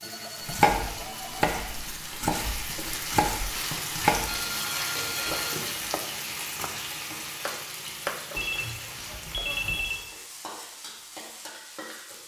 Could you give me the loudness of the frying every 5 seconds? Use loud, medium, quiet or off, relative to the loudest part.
loud, loud, medium.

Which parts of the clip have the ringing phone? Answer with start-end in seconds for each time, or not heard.
0.0-1.6, 4.2-5.7, 8.3-10.1.